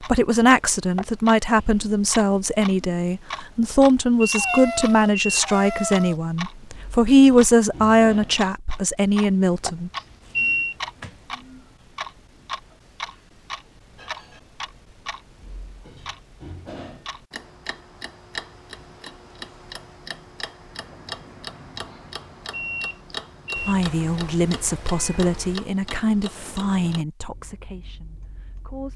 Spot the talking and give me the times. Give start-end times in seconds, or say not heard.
0.0-9.9, 23.6-28.9.